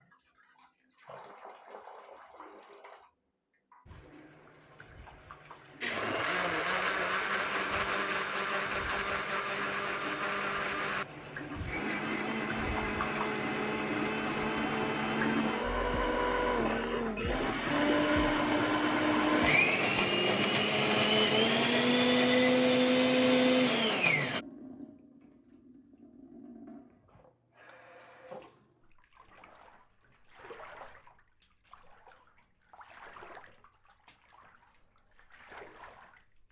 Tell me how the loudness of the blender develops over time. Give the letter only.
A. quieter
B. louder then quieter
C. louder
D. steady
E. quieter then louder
C.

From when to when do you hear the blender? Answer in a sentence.
You can hear the blender from 5.8 to 24.4 s.